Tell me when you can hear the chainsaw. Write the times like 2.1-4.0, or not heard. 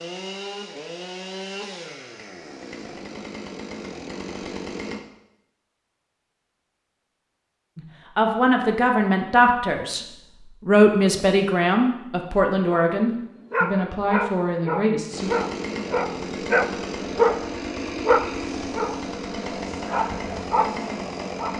0.0-5.0, 15.1-21.5.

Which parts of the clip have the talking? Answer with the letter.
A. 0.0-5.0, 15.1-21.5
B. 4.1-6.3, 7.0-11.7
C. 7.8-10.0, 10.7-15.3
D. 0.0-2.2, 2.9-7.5
C.